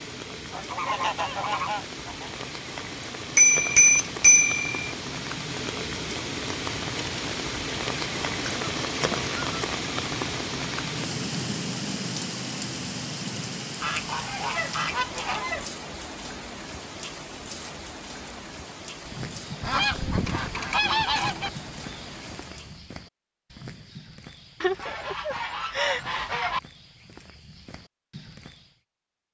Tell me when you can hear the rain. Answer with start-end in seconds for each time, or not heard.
0.0-22.9.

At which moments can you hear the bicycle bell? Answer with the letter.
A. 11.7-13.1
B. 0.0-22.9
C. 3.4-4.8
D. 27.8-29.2
C.